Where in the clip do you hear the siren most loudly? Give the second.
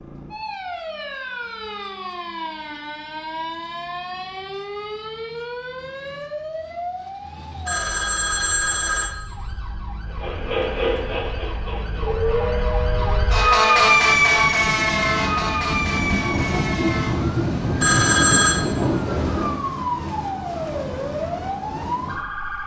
14 s.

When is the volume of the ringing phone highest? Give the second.
18 s.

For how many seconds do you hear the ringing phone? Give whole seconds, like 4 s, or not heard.
2 s.